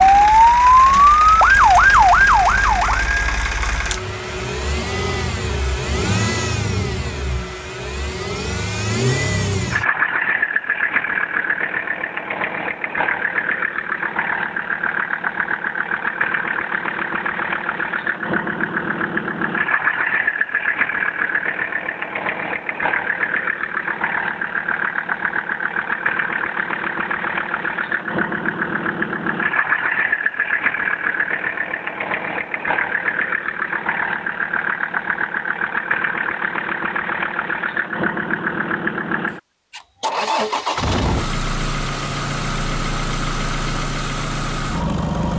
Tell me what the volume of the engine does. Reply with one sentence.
The volume of the engine stays about the same.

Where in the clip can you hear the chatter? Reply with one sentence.
The chatter can't be heard in this clip.